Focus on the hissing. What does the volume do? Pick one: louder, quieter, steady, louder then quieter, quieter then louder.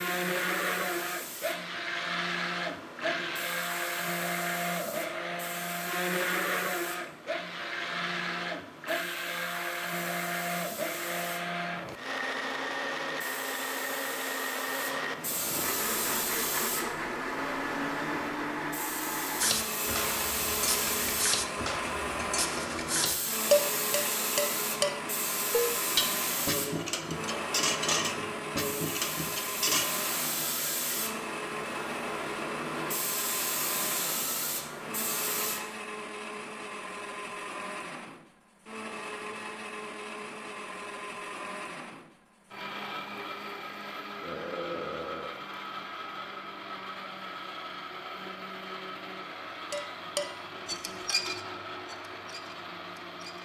louder.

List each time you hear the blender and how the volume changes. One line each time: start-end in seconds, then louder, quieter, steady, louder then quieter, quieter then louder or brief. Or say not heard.
0.0-53.3 quieter.